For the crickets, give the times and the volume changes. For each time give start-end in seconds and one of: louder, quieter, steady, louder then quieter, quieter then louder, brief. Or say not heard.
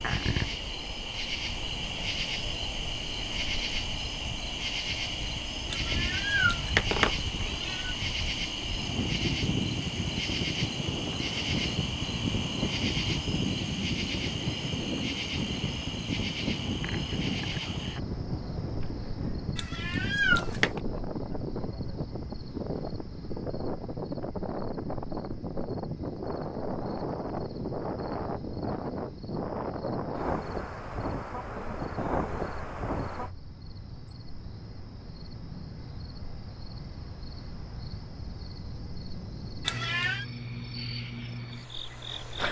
0.0-42.4 quieter then louder.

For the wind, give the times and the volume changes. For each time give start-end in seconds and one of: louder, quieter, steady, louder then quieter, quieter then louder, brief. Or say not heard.
0.0-33.3 louder.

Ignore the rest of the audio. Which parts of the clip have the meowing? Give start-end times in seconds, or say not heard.
5.7-8.0, 19.6-20.8, 39.6-40.2.